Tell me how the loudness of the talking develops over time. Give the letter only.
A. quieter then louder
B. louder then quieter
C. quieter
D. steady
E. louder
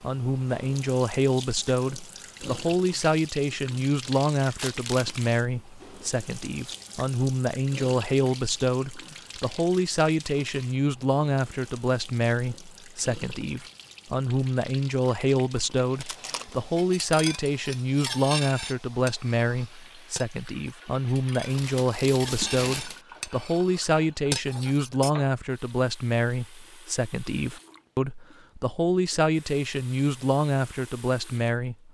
D.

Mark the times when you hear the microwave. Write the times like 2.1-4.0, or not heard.
not heard.